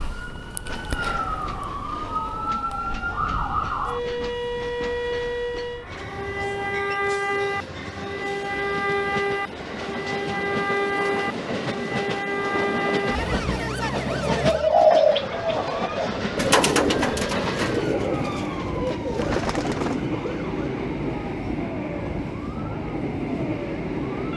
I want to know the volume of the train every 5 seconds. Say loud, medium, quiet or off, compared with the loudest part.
medium, medium, loud, loud, loud.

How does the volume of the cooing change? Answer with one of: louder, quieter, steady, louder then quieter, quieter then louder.
quieter.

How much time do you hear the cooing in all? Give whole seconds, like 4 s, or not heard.
7 s.